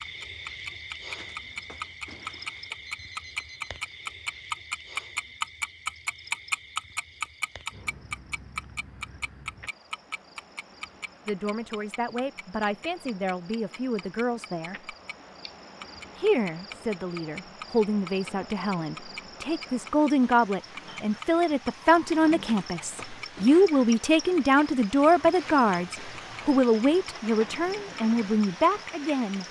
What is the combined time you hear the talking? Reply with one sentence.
You can hear the talking for 17 seconds altogether.